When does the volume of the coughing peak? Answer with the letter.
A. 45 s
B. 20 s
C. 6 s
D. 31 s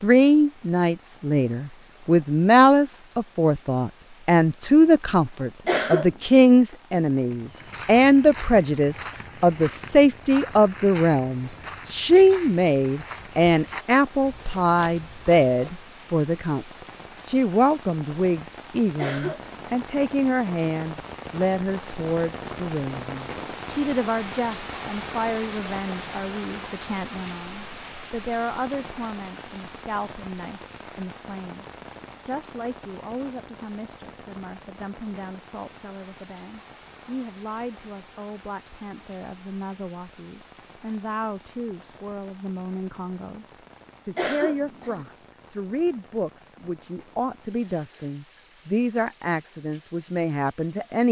C.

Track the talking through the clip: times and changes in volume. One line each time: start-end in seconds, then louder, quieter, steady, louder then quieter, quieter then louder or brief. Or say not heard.
0.0-51.0 quieter then louder.